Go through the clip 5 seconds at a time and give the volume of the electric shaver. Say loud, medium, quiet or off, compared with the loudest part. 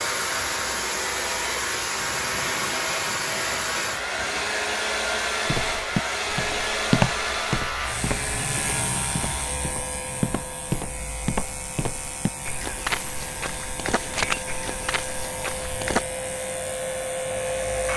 loud, loud, medium, medium.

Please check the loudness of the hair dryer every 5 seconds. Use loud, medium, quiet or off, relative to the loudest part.
loud, loud, quiet, loud.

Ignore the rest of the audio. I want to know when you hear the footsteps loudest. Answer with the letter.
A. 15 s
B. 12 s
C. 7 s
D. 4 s
C.